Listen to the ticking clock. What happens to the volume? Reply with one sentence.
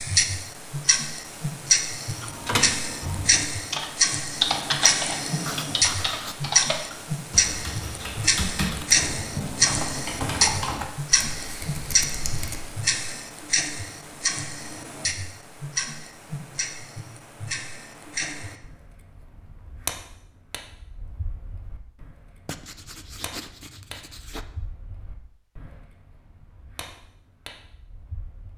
The loudness of the ticking clock goes down.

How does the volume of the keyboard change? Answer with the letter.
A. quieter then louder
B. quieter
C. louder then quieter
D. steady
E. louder
B.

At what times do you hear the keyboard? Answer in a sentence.
The keyboard can be heard from 2.1 to 12.8 s.